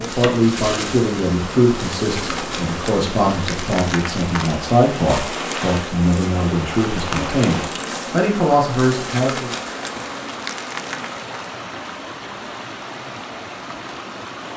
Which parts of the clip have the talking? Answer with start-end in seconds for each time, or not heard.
0.0-9.5.